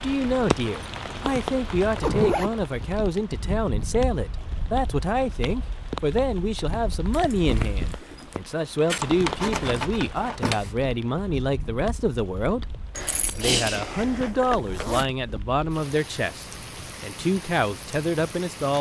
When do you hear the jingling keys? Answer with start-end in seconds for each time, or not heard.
0.3-1.1, 8.9-10.7, 12.9-14.9.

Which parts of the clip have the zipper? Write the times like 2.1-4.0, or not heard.
1.7-2.7, 7.1-8.4, 14.6-15.2.